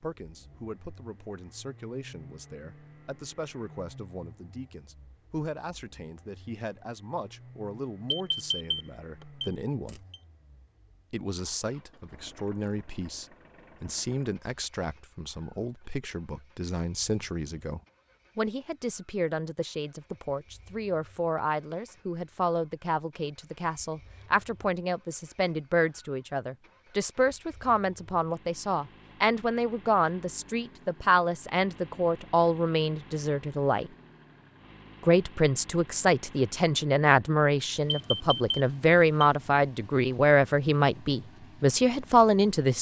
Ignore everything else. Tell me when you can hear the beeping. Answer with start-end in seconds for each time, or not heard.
8.1-10.2, 37.9-39.3.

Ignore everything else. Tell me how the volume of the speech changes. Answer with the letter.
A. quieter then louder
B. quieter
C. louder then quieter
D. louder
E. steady
D.